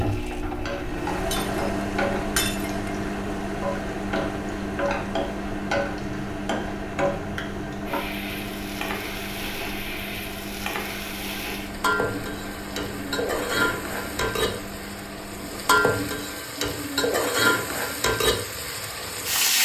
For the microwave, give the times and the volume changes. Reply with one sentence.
You can hear the microwave from 0.0 to 16.5 s, getting quieter.